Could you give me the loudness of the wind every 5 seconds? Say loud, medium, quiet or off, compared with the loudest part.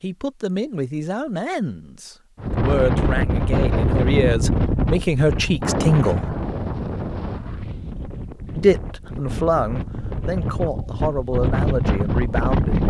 loud, medium, loud.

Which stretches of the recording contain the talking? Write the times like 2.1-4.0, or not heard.
0.0-6.3, 8.6-12.8.